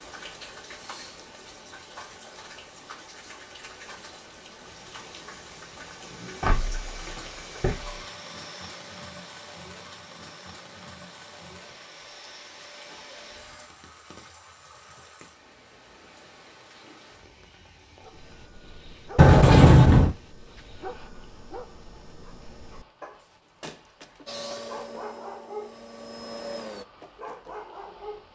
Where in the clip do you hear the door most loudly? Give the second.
20 s.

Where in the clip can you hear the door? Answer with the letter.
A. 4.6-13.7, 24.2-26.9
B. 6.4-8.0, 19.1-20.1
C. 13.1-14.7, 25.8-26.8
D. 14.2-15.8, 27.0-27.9
B.